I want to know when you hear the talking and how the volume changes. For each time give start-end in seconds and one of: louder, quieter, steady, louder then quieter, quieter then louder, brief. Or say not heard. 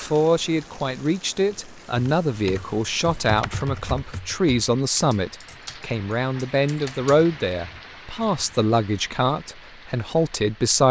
0.0-10.8 steady.